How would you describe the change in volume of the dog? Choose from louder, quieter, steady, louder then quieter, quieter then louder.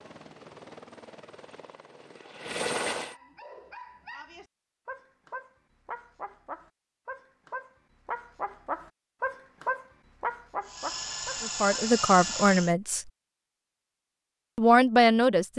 louder.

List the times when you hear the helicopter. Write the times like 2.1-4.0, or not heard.
0.0-3.1, 10.6-12.8.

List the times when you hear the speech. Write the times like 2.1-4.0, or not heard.
11.4-13.1, 14.6-15.5.